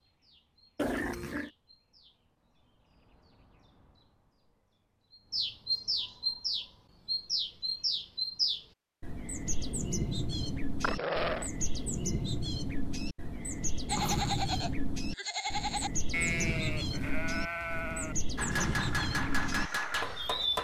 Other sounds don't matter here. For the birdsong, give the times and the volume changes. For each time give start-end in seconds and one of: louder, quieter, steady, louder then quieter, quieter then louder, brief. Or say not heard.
0.0-20.5 louder.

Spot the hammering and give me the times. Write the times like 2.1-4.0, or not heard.
18.4-20.5.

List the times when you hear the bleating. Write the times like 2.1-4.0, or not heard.
13.8-20.4.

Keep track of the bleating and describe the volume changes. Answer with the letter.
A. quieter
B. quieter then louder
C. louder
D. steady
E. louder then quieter
A.